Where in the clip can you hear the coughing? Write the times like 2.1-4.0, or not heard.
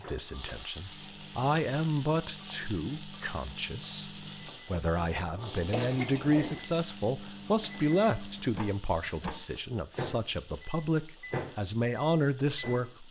5.7-6.6.